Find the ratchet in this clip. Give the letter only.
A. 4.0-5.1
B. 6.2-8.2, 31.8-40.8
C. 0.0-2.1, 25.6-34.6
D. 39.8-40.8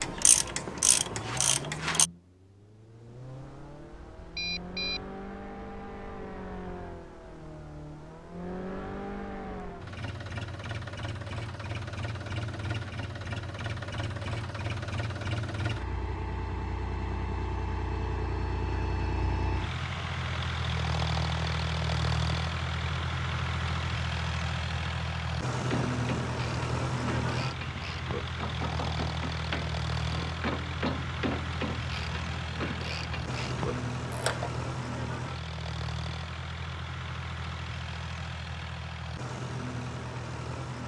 C.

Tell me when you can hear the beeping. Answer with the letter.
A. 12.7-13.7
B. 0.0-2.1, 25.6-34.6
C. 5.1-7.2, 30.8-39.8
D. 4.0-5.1
D.